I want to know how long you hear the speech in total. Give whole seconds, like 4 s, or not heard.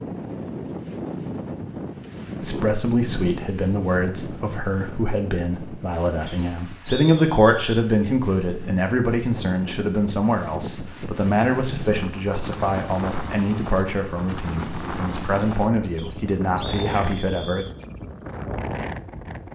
15 s.